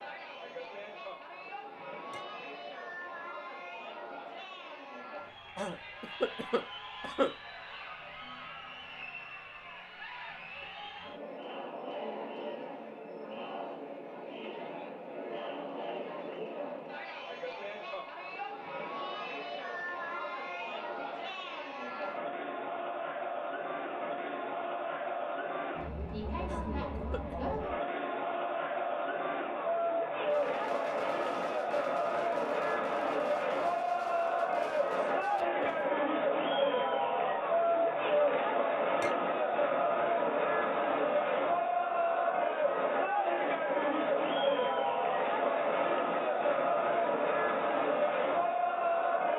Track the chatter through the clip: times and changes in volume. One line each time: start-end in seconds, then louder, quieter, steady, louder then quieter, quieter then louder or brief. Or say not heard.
0.0-49.3 louder.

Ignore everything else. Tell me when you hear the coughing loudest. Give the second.
7 s.